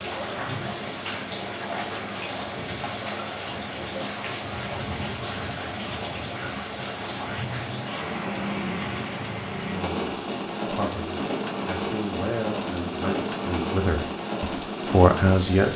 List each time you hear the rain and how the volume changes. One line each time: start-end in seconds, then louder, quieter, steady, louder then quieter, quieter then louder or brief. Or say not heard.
0.0-15.7 steady.